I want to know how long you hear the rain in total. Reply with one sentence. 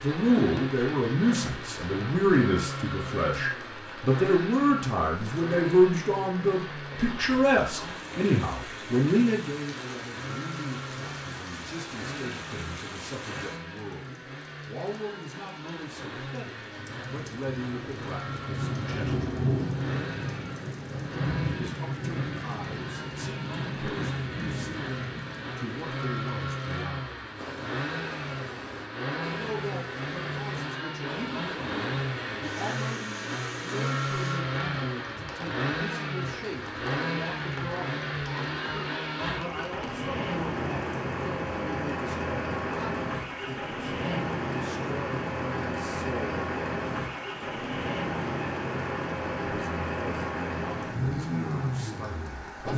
The rain can be heard for 53 seconds in total.